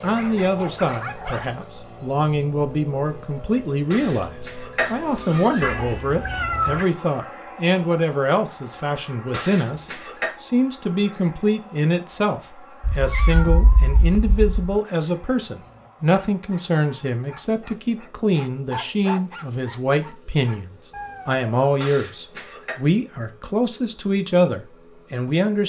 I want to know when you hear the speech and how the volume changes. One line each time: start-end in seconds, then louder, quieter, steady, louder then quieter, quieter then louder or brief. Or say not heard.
0.0-25.6 steady.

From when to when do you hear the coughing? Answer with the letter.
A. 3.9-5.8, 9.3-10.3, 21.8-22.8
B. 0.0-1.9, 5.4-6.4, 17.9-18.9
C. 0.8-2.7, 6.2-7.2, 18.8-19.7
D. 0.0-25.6
A.